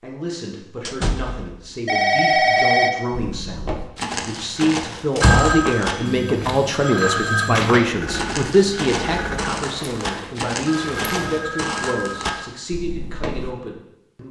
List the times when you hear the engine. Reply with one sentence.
The engine can be heard from 7.8 to 9.7 s.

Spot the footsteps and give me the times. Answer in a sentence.
You can hear the footsteps from 3.1 to 13.6 s.